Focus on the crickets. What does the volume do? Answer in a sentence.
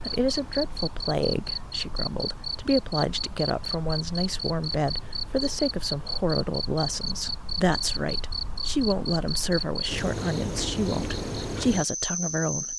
The loudness of the crickets stays about the same.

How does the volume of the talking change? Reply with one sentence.
The loudness of the talking stays about the same.